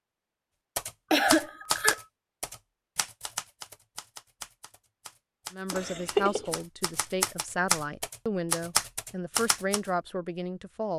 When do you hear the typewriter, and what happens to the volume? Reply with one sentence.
The typewriter can be heard from 0.8 to 9.8 s, getting quieter then louder.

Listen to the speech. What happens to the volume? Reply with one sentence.
The loudness of the speech stays about the same.